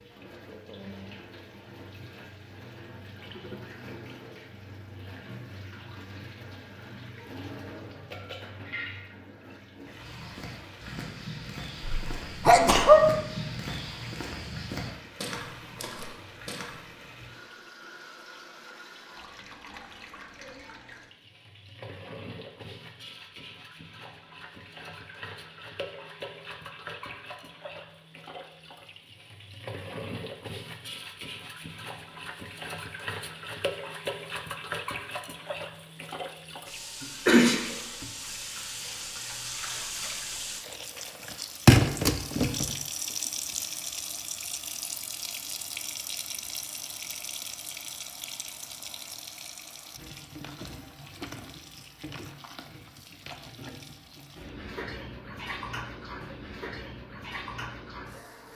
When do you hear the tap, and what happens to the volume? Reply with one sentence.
You can hear the tap from 0.0 to 58.5 s, getting louder then quieter.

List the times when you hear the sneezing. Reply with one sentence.
The sneezing can be heard from 11.8 to 13.1 s and from 37.0 to 38.0 s.